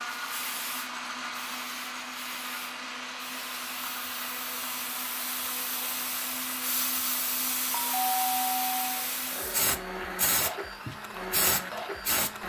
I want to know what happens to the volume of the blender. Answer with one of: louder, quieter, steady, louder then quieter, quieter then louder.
steady.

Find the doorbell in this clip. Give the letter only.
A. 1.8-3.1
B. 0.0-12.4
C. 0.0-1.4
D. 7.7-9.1
D.